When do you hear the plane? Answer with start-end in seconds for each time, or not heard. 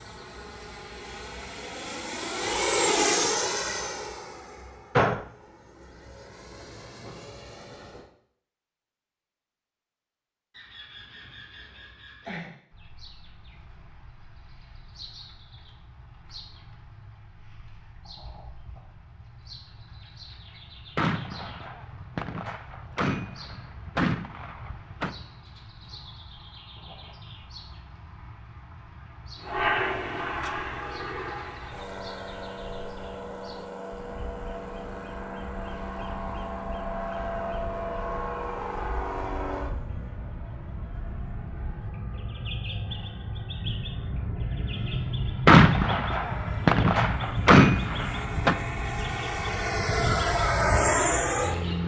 0.0-8.0, 29.4-51.8.